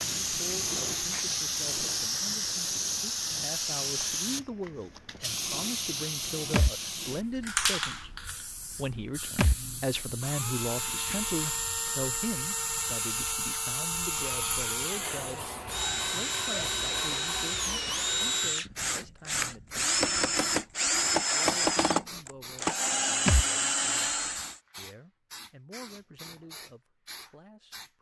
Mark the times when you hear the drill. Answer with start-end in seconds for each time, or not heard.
10.2-24.6.